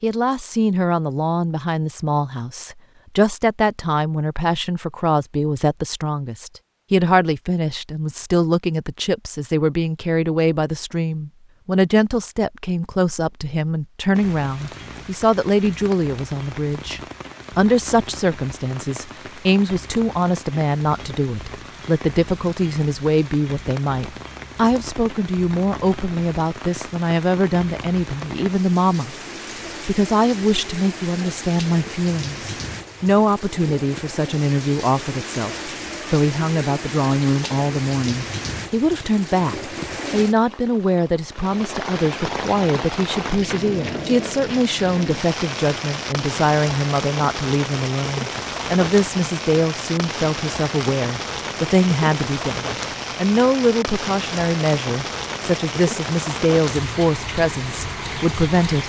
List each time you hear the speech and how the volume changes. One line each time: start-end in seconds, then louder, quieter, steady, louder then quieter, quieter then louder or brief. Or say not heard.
0.0-29.1 steady
29.9-58.8 steady.